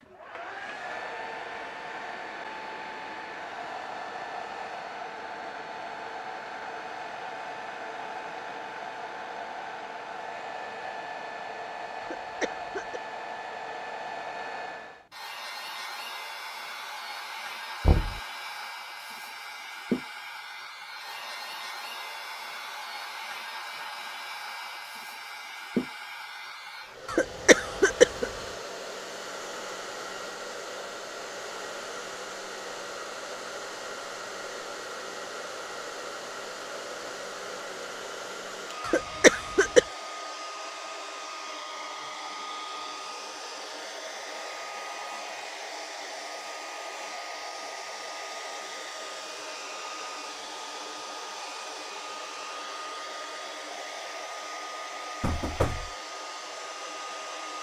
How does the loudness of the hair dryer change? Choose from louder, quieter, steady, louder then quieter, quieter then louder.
steady.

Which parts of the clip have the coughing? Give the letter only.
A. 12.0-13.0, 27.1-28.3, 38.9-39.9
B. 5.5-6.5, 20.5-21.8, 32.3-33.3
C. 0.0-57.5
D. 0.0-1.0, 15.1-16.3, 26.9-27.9
A.